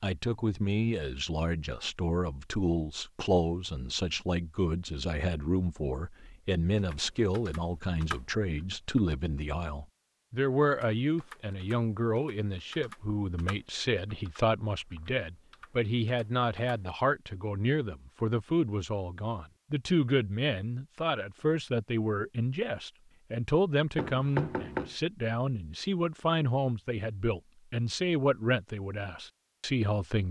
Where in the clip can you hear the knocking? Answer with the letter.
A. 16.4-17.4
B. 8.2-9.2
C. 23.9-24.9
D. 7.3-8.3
C.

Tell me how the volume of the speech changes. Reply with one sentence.
The loudness of the speech stays about the same.